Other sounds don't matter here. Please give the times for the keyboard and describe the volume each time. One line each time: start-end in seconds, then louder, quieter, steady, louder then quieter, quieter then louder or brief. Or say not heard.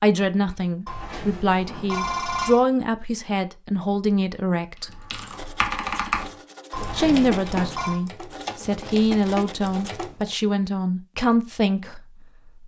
4.8-10.3 quieter.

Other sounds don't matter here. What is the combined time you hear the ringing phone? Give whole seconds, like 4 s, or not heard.
3 s.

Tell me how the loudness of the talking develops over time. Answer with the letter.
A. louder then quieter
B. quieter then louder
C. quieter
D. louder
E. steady
E.